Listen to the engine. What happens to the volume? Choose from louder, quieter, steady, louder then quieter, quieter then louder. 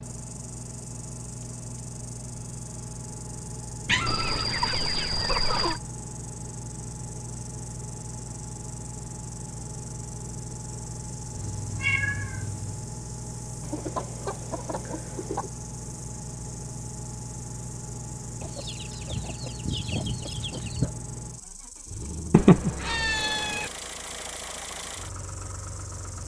steady.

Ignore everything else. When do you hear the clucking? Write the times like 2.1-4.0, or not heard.
4.0-5.8, 13.6-15.5, 18.4-20.9.